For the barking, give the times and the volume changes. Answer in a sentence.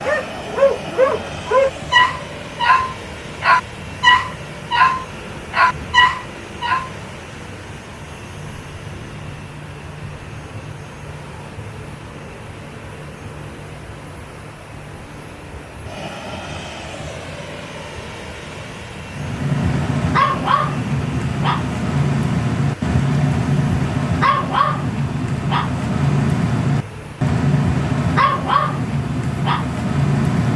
The barking can be heard from 0.0 to 6.9 s, at a steady volume; and from 19.1 to 30.5 s, at a steady volume.